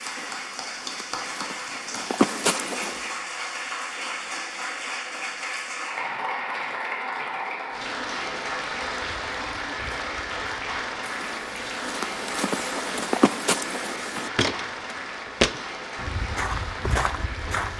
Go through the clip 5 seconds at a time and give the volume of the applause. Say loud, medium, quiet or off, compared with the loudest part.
loud, loud, loud, medium.